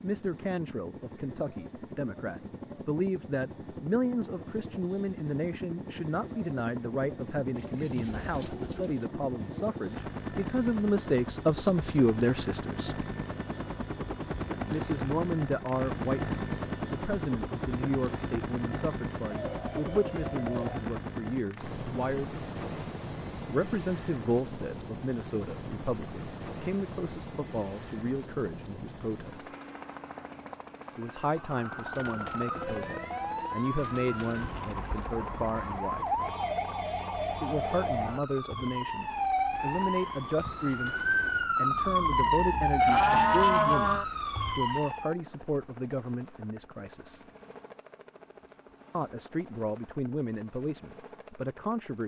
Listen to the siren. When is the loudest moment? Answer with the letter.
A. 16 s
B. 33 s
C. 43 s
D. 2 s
C.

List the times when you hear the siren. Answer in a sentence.
You can hear the siren from 31.4 to 45.1 s.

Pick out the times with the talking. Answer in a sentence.
The talking can be heard from 0.0 to 12.9 s, from 14.7 to 22.3 s, from 23.5 to 29.5 s, from 30.9 to 36.1 s, from 37.4 to 47.2 s and from 48.9 to 52.0 s.